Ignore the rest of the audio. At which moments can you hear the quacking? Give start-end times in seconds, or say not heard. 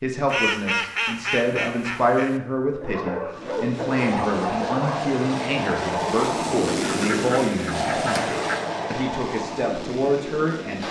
0.2-2.4, 6.7-8.7.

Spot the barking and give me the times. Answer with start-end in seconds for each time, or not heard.
2.8-5.2.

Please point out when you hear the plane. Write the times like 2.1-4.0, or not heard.
3.2-10.8.